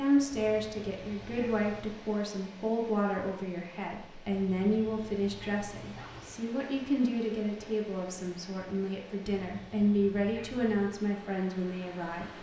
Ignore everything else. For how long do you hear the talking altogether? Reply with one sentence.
The talking can be heard for 12 seconds in total.